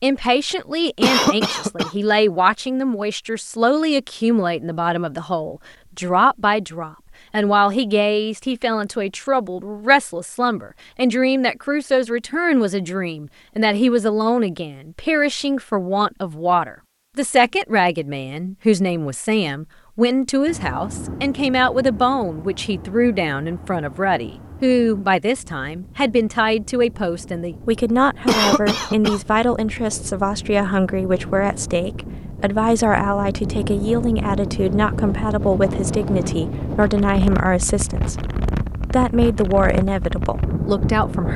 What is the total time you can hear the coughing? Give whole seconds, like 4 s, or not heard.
2 s.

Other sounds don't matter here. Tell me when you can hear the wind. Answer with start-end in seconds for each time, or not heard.
20.4-41.3.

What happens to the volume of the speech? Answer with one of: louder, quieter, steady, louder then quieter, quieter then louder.
steady.